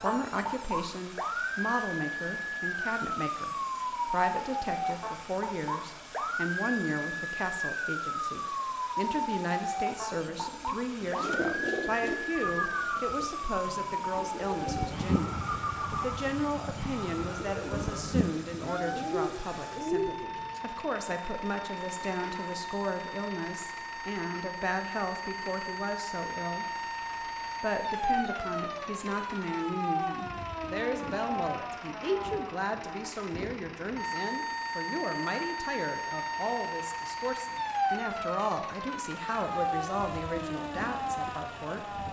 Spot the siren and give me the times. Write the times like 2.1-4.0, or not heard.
0.0-42.0.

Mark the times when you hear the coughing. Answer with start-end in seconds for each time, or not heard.
not heard.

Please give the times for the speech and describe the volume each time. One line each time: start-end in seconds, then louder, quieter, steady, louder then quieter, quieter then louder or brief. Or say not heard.
0.0-26.6 steady
27.6-42.0 steady.